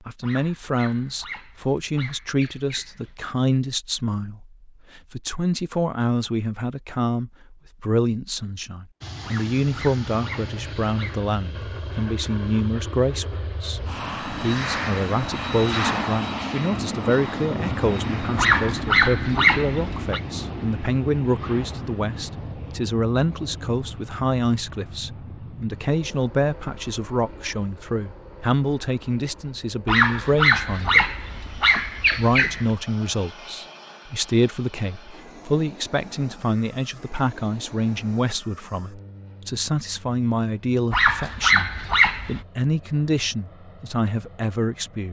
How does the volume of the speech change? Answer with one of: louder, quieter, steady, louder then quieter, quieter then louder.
steady.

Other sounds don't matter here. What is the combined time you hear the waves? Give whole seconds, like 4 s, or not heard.
not heard.